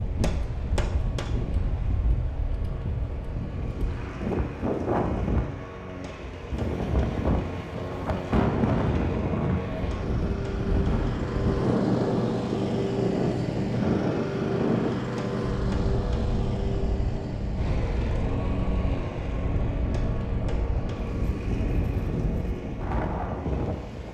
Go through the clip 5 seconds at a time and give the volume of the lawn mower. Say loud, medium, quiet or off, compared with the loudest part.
quiet, medium, loud, loud, medium.